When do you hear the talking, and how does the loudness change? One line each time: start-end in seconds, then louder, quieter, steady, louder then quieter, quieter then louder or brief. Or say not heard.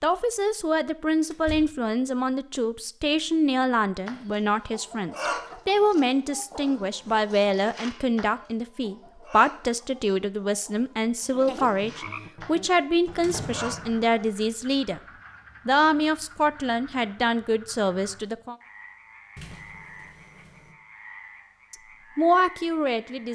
0.0-15.0 steady
15.7-18.6 brief
21.7-23.3 brief.